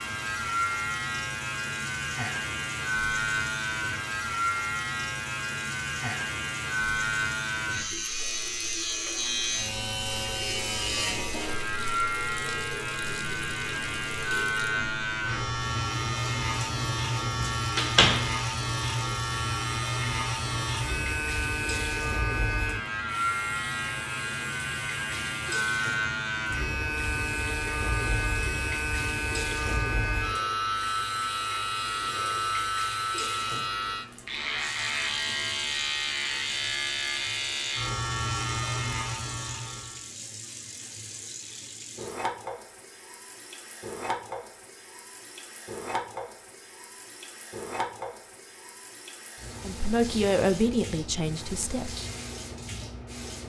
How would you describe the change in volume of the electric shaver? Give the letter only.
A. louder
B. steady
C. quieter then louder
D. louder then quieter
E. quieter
B.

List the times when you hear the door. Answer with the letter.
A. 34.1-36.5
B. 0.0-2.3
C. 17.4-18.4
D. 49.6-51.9
C.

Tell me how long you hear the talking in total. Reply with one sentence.
The talking can be heard for 2 seconds in total.